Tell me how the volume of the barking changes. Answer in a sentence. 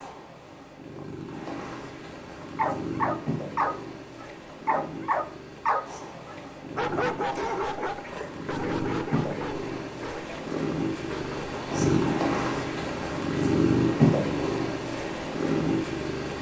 The volume of the barking goes down.